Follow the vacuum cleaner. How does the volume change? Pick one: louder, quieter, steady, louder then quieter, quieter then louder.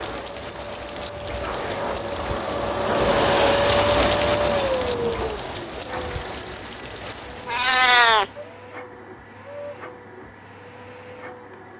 louder then quieter.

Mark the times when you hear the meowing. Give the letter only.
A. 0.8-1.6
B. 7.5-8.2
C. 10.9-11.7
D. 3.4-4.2
B.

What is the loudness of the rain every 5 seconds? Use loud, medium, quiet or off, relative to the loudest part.
loud, medium, off.